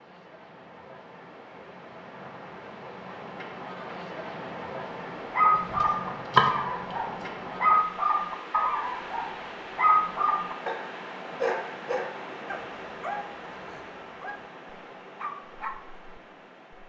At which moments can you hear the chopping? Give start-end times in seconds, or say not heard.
5.5-7.3.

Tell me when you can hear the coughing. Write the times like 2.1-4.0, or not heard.
not heard.